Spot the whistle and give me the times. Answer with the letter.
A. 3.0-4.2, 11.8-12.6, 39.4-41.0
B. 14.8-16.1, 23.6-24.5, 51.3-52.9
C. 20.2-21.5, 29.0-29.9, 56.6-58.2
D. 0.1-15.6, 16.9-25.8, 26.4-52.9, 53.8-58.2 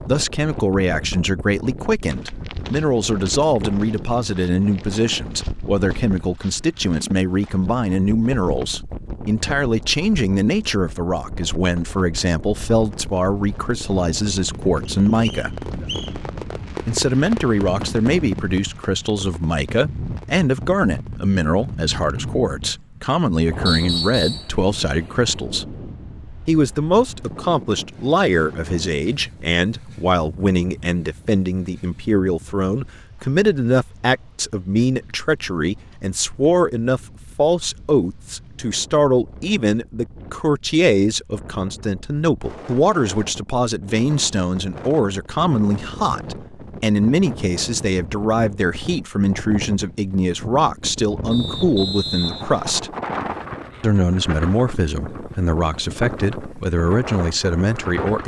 B.